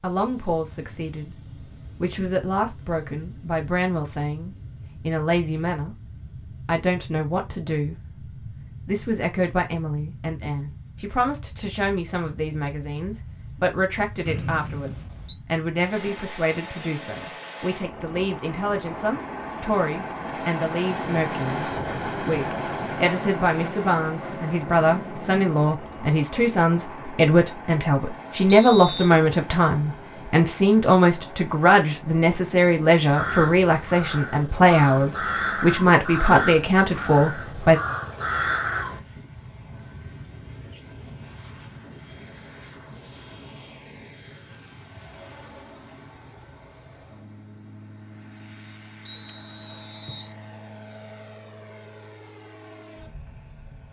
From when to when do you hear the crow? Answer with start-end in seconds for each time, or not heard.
33.1-39.0.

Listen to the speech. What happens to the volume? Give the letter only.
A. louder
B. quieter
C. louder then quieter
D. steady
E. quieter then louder
A.